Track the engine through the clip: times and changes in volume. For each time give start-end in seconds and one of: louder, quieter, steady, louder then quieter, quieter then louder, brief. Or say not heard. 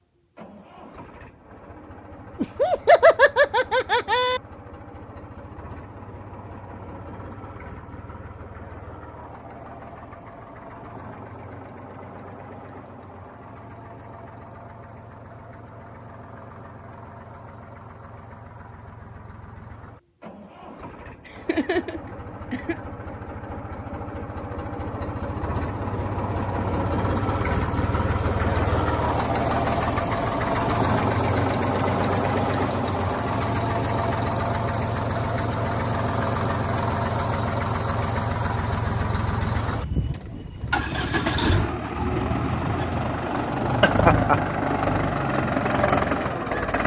0.1-46.8 louder.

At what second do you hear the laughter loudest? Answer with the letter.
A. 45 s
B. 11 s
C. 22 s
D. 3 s
D.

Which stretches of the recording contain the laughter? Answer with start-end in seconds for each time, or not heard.
2.4-4.4, 21.4-22.8, 43.8-44.4.